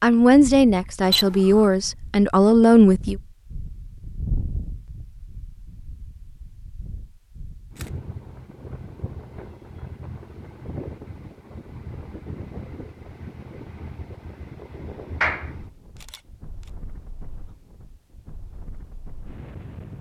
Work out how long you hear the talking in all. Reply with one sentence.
You can hear the talking for 3 seconds altogether.